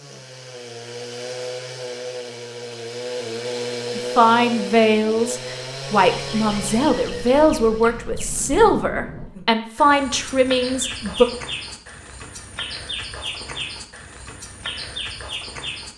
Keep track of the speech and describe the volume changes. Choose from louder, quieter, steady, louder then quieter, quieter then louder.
steady.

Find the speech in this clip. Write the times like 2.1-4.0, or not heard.
4.0-11.2.